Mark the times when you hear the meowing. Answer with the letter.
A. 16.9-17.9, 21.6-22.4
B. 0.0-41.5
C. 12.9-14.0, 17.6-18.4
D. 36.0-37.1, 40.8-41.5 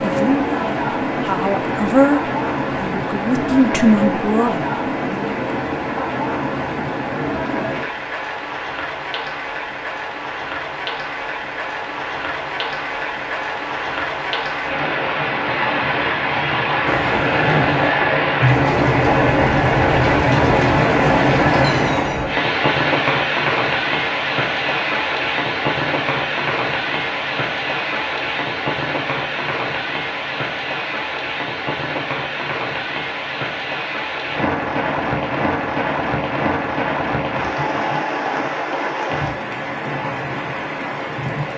A.